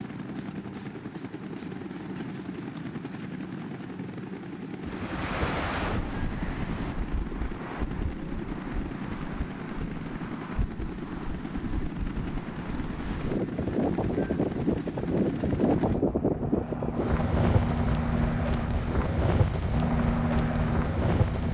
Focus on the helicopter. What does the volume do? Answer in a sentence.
The volume of the helicopter goes up.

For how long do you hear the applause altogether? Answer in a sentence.
The applause can't be heard in this clip.